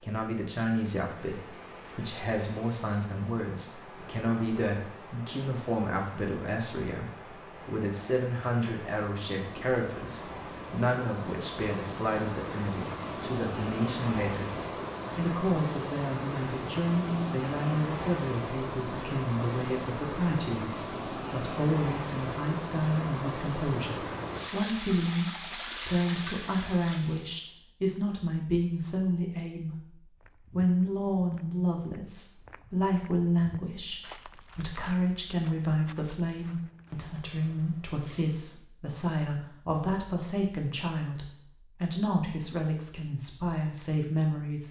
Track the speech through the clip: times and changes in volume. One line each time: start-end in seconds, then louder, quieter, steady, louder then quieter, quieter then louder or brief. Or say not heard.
0.0-44.6 steady.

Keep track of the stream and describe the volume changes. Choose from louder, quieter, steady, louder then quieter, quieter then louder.
louder.